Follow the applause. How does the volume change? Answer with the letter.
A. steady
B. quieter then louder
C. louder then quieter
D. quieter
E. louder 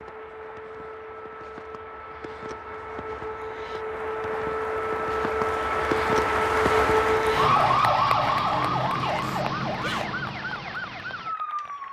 C.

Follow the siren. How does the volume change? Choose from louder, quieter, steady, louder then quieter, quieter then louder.
louder then quieter.